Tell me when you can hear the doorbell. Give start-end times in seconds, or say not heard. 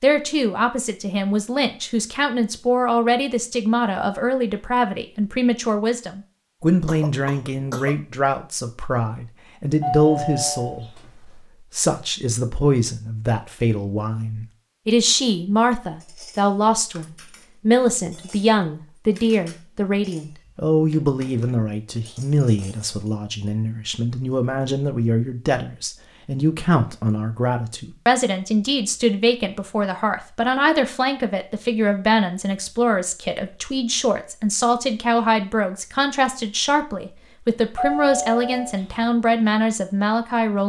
9.8-11.1, 37.8-39.0.